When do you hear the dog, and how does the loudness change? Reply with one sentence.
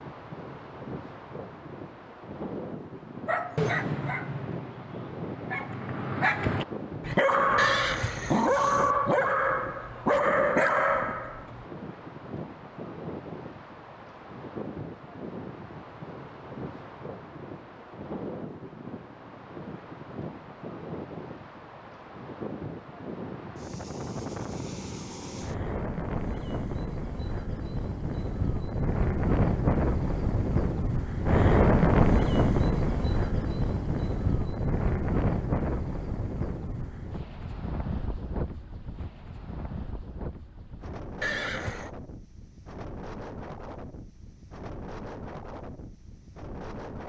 You can hear the dog from 3.2 to 11.7 s, getting louder.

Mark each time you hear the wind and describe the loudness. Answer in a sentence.
The wind can be heard from 0.0 to 47.0 s, getting louder then quieter.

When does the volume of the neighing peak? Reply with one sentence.
The loudest moment of the neighing is at 8 seconds.